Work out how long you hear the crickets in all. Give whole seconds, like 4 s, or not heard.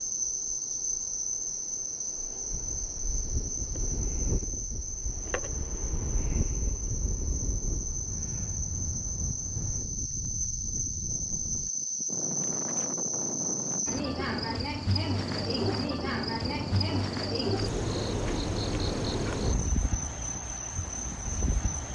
22 s.